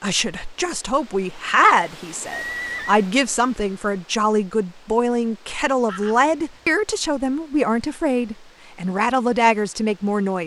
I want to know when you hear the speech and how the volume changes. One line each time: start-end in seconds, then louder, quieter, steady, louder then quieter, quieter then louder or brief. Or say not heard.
0.0-10.4 steady.